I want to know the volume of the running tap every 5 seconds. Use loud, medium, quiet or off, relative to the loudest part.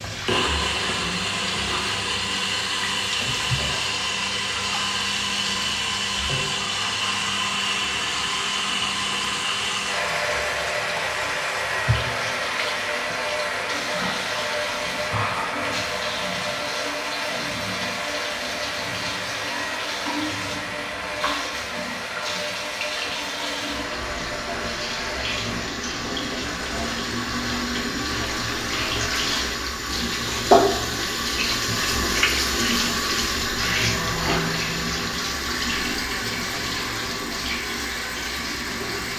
medium, medium, medium, medium, medium, medium, loud, medium.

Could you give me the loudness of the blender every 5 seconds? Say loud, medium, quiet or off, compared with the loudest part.
loud, loud, loud, loud, medium, medium, medium, medium.